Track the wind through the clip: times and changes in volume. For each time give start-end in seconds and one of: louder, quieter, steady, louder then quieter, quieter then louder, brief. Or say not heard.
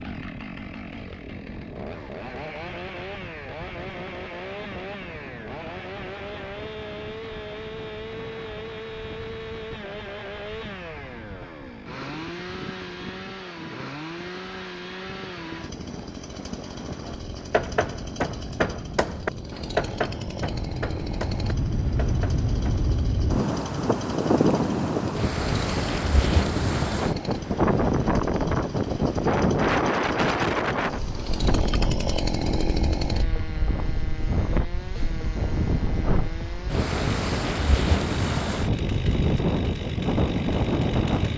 0.0-41.3 louder.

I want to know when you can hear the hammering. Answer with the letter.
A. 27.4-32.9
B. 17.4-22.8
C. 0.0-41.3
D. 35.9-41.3
B.